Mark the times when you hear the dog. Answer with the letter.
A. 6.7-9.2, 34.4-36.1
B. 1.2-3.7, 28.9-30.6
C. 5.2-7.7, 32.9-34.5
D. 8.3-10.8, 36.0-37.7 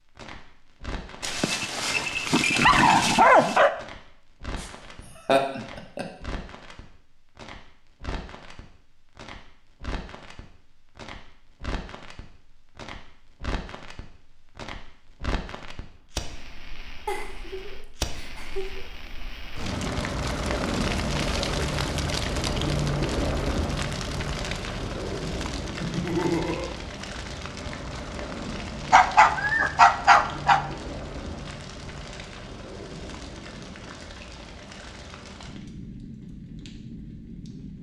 B.